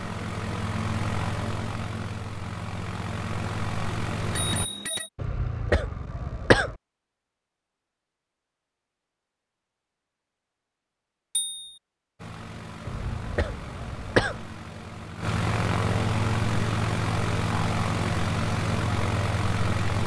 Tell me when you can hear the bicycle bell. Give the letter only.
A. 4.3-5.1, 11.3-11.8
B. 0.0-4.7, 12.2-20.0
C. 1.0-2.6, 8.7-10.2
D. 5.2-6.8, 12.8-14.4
A.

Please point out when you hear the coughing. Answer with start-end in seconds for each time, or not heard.
5.2-6.8, 12.8-14.4.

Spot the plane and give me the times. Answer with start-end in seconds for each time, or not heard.
0.0-4.7, 12.2-20.0.